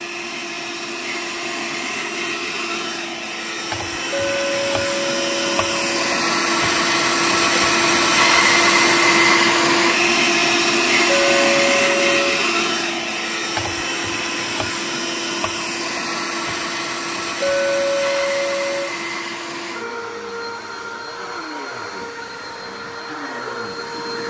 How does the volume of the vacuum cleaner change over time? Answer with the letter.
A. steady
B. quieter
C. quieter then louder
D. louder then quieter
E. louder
D.